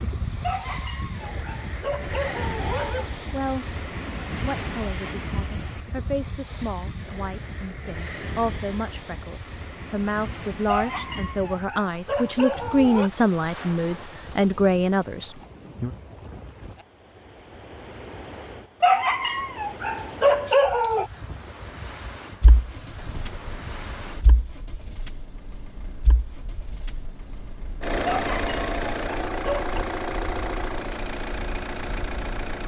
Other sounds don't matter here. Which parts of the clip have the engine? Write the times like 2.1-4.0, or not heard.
22.4-32.6.